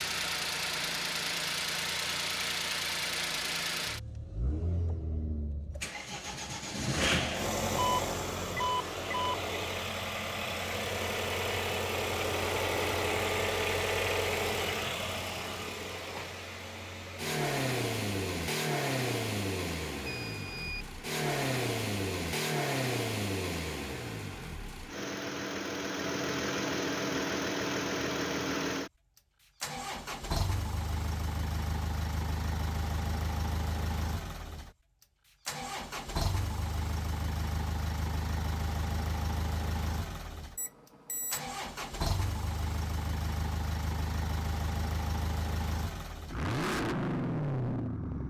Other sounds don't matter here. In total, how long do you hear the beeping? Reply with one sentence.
You can hear the beeping for 3 seconds altogether.